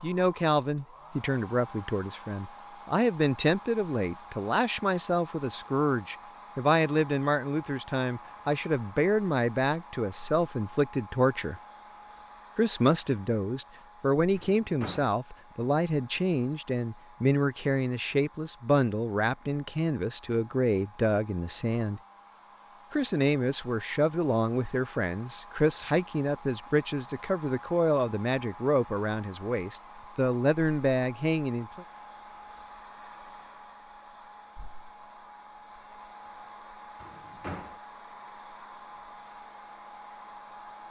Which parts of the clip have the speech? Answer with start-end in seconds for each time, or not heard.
0.0-11.6, 12.6-22.0, 22.9-31.9.